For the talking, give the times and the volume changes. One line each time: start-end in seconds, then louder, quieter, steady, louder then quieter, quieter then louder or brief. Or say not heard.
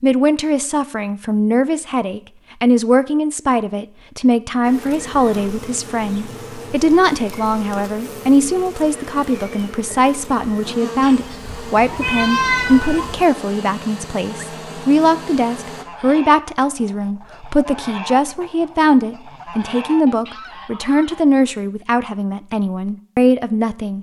0.0-23.9 steady.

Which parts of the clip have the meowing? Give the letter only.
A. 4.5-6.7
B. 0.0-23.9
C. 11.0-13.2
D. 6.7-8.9
C.